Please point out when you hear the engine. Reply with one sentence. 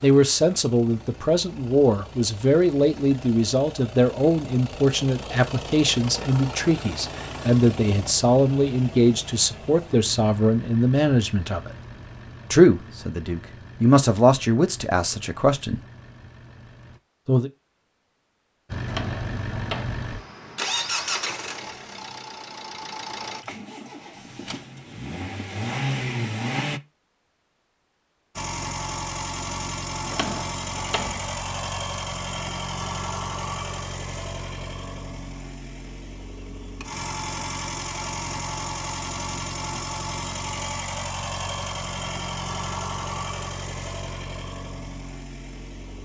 You can hear the engine from 0.0 to 17.0 s, from 18.6 to 26.8 s and from 28.4 to 46.0 s.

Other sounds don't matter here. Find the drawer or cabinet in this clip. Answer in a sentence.
The drawer or cabinet can be heard from 18.9 to 20.1 s and from 30.1 to 31.7 s.